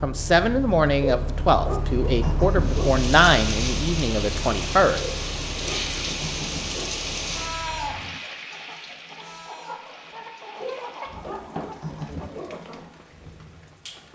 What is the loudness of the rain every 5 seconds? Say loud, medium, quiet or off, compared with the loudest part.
loud, loud, quiet.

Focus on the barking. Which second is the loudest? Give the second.
2 s.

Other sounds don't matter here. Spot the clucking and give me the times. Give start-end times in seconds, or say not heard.
7.7-13.0.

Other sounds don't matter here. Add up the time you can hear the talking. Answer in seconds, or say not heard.
5 s.